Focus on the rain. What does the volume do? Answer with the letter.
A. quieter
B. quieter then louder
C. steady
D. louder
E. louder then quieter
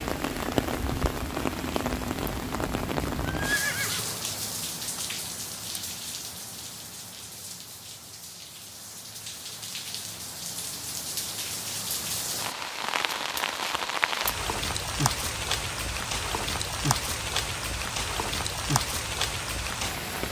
B.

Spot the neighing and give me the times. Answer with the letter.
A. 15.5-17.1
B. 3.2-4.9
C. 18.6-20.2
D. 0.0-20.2
B.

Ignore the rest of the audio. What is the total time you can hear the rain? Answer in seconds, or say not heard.
20 s.